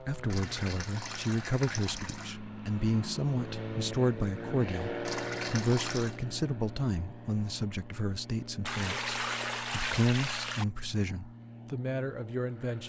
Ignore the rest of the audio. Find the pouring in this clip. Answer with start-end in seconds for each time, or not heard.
0.3-2.3, 5.0-6.2, 8.7-10.7.